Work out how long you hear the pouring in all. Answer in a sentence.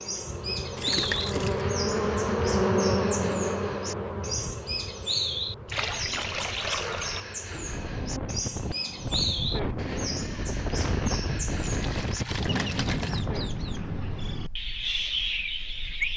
You can hear the pouring for 4 seconds altogether.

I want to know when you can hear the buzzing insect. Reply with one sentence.
The buzzing insect can be heard from 0.0 to 10.3 s.